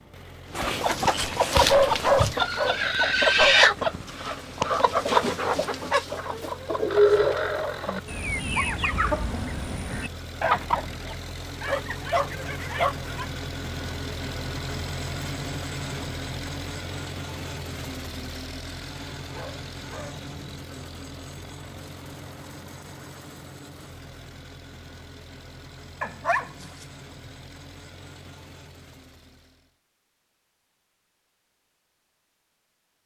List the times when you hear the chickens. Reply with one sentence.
The chickens can be heard from 0.5 to 11.2 s.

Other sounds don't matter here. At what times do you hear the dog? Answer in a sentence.
You can hear the dog from 1.1 to 3.6 s, from 11.6 to 13.2 s, from 19.3 to 20.2 s and from 26.0 to 26.6 s.